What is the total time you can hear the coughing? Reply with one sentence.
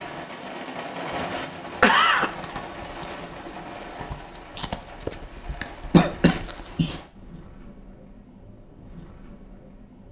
You can hear the coughing for 2 seconds altogether.